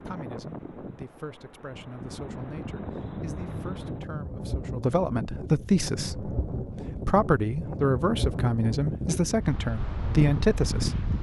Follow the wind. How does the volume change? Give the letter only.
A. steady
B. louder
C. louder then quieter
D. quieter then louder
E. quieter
B.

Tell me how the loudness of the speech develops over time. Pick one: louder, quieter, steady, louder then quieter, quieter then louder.
louder.